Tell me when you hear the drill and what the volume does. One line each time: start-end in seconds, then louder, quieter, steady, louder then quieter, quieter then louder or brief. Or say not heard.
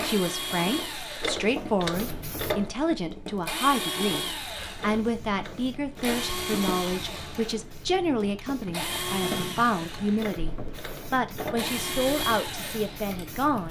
0.0-13.6 steady.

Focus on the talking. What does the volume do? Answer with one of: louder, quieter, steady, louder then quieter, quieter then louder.
steady.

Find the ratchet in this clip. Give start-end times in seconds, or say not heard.
1.2-2.8, 4.8-6.2, 10.2-11.7.